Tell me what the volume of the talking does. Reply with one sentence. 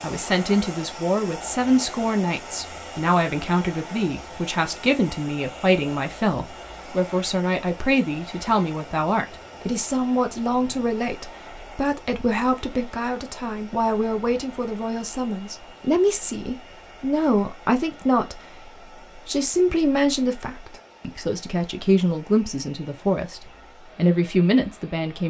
The loudness of the talking stays about the same.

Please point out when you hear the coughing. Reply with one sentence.
The coughing can't be heard in this clip.